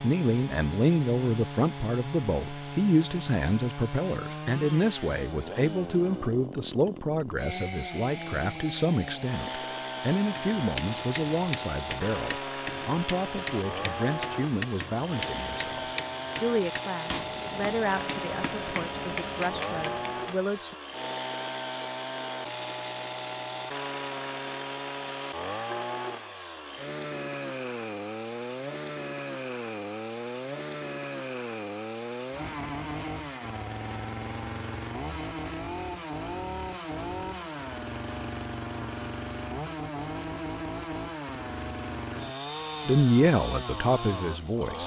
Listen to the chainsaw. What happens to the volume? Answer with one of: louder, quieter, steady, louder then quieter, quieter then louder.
steady.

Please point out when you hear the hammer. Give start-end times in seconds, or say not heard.
10.3-20.4.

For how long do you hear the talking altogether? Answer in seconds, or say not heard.
23 s.